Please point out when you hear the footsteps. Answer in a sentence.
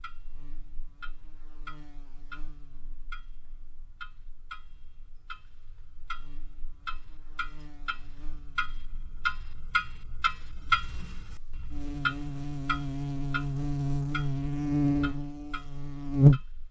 The footsteps can't be heard in this clip.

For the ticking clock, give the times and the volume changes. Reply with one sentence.
You can hear the ticking clock from 0.0 to 16.6 s, getting louder then quieter.